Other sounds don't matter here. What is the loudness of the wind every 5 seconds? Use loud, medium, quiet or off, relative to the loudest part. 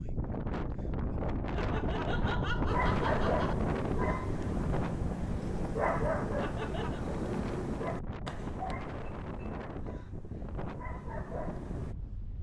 loud, medium, medium.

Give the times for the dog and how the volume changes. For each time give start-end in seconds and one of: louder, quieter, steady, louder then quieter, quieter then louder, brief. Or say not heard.
2.6-11.9 quieter.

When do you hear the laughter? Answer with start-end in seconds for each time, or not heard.
1.6-3.5, 6.4-7.0.